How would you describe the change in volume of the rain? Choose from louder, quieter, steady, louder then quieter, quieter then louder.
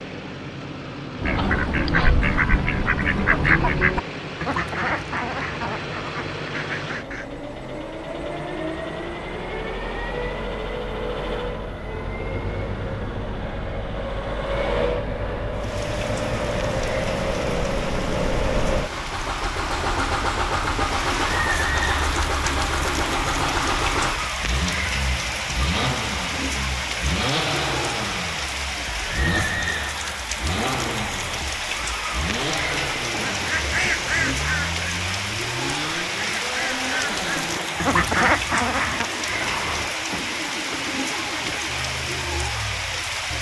louder.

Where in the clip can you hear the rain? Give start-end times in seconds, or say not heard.
15.5-43.3.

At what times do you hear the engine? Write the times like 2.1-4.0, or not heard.
0.0-43.3.